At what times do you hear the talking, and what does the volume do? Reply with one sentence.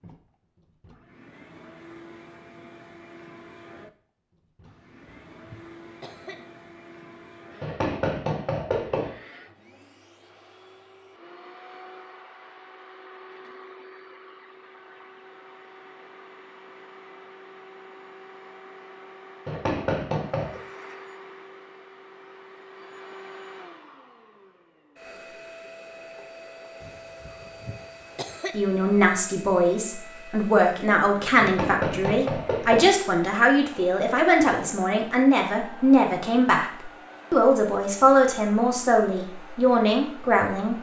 The talking can be heard from 28.5 to 40.7 s, at a steady volume.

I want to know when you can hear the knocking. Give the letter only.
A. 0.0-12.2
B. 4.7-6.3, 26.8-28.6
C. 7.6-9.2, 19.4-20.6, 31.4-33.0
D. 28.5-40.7
C.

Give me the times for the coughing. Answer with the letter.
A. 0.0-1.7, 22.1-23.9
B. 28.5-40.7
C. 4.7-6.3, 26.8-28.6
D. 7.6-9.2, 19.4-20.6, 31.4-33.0
C.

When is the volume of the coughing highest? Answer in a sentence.
The volume of the coughing peaks at 28 seconds.